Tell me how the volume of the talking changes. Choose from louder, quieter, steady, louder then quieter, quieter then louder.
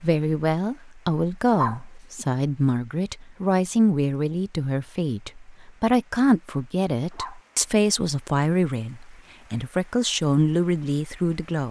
steady.